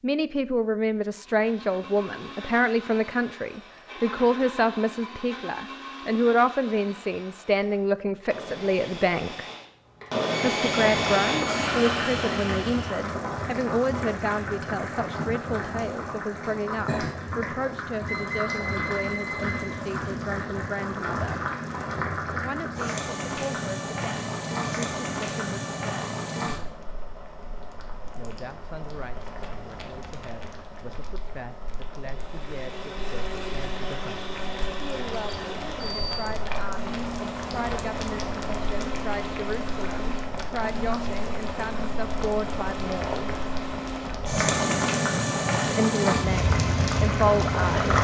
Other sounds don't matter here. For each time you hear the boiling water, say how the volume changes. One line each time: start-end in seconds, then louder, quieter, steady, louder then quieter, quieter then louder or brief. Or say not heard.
10.7-47.9 quieter then louder.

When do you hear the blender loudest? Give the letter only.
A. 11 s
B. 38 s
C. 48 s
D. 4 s
A.